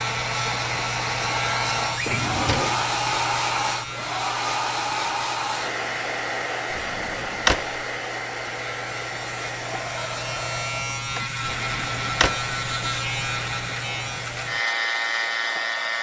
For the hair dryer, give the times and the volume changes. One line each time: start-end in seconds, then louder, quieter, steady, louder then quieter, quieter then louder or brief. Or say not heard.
0.0-15.9 quieter.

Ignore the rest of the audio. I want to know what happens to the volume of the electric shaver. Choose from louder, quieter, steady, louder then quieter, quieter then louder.
quieter then louder.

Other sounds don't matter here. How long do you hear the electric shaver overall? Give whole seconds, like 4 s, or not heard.
16 s.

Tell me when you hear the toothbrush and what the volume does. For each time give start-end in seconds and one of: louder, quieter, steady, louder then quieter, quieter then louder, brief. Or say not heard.
not heard.